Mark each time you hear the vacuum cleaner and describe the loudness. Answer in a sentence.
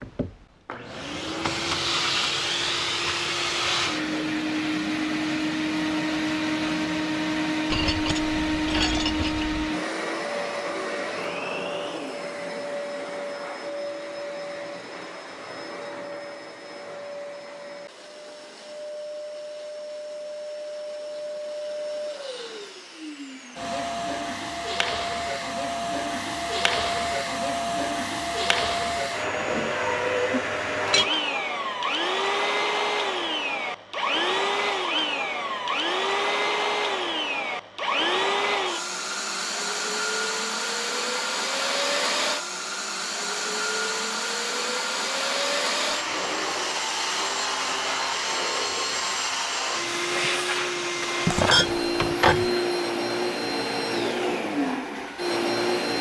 You can hear the vacuum cleaner from 0.0 to 55.9 s, getting quieter then louder.